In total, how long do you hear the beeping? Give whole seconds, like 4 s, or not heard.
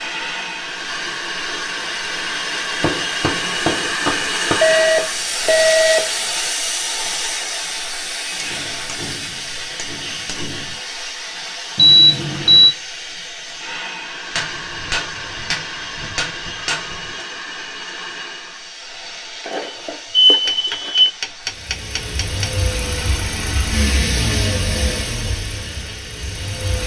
4 s.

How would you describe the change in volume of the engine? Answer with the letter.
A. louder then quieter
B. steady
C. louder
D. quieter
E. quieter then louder
A.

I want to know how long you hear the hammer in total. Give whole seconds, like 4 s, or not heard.
9 s.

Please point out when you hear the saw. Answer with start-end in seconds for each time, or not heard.
not heard.